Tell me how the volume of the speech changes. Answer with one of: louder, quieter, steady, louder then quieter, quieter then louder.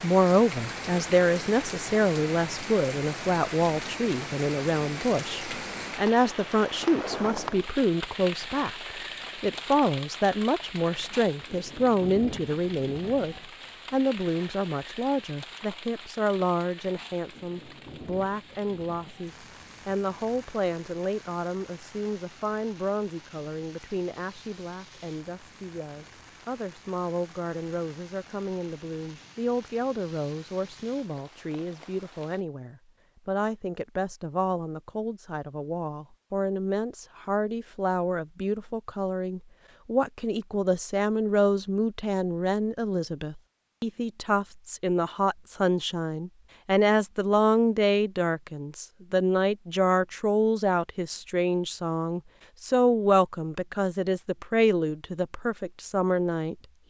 quieter then louder.